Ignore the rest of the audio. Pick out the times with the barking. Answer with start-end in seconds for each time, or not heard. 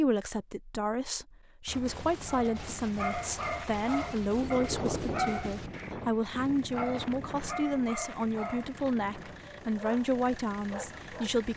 2.2-11.3.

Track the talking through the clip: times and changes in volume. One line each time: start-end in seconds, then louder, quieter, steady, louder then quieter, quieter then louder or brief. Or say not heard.
0.0-11.5 steady.